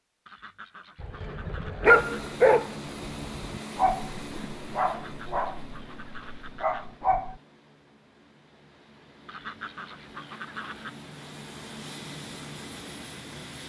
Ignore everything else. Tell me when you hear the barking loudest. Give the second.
2 s.